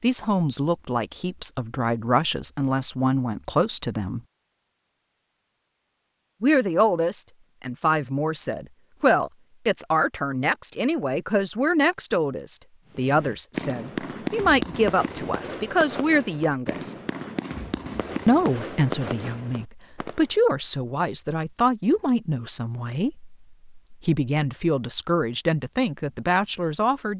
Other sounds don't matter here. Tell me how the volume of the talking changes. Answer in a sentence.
The loudness of the talking stays about the same.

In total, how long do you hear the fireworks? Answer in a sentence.
You can hear the fireworks for 7 seconds altogether.